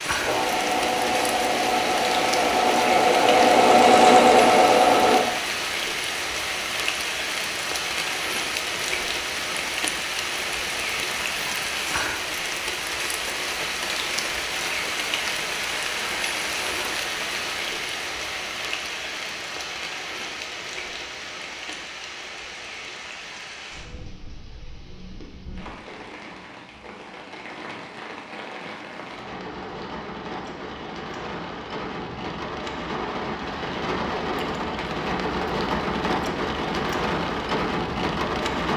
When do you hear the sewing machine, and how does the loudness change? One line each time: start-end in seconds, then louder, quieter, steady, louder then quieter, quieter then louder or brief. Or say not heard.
0.0-5.2 louder.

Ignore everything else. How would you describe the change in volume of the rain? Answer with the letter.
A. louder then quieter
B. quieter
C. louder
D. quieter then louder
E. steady
D.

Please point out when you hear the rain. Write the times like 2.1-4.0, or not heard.
0.0-38.7.